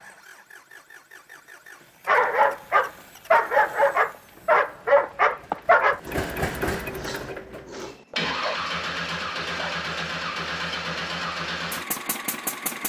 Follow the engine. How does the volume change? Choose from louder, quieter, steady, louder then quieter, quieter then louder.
louder.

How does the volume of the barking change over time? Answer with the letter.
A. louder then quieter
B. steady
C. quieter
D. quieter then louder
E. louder
C.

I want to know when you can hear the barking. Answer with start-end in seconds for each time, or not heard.
2.0-9.8.